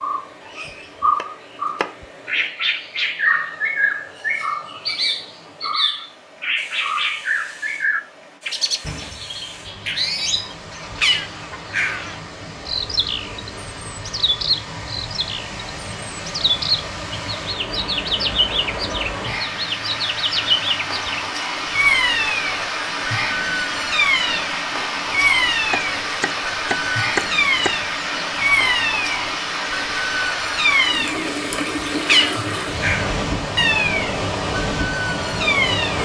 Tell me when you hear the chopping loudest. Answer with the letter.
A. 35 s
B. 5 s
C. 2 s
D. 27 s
D.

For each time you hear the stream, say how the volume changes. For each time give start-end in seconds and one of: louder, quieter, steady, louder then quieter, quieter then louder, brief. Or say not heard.
0.0-35.9 louder.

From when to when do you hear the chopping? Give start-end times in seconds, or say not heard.
0.7-2.0, 25.7-27.9.